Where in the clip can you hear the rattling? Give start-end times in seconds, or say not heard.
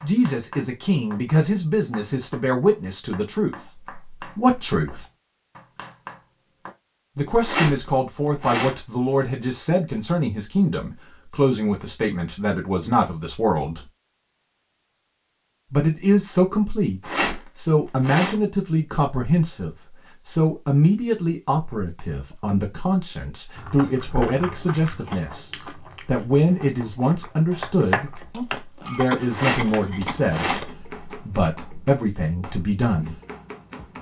7.4-9.2, 17.0-18.4, 29.3-31.1.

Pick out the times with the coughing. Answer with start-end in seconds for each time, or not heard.
28.9-30.8.